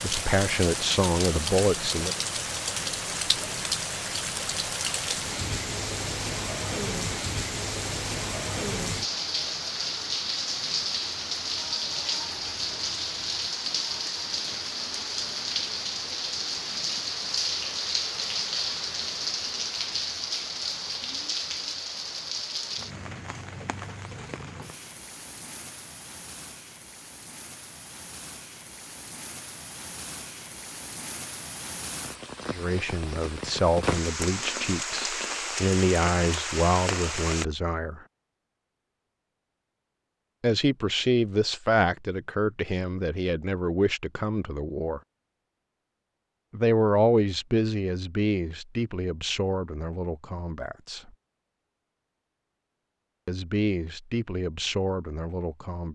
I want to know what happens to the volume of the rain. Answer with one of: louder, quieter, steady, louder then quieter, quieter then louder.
quieter then louder.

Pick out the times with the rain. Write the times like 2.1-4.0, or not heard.
0.0-37.5.